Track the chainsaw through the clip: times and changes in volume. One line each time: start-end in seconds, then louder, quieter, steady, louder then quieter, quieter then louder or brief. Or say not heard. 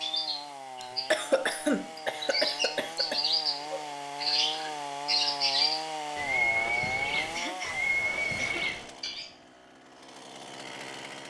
0.0-11.2 louder then quieter.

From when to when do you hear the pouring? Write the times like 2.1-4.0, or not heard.
not heard.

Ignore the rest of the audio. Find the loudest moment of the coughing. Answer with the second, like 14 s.
1 s.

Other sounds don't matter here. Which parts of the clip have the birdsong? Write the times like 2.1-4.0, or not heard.
0.0-9.3.